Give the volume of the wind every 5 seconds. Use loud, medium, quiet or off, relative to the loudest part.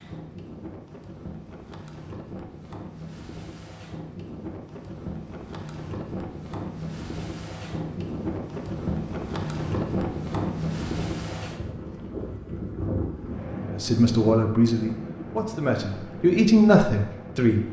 medium, loud, loud, medium.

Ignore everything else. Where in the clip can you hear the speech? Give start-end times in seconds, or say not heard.
13.7-17.6.